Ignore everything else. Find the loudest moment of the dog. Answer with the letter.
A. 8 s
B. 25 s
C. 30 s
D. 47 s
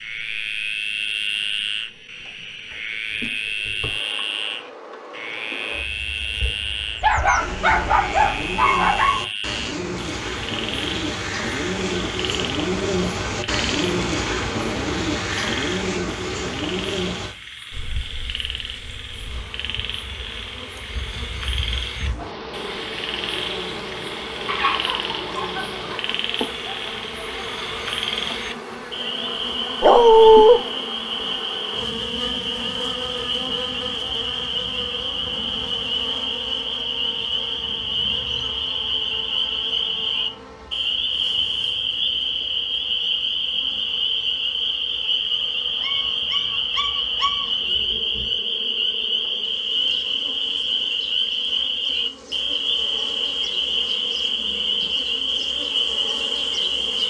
C.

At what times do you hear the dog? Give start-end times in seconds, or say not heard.
7.0-9.2, 24.4-26.1, 29.8-30.6, 45.8-47.5.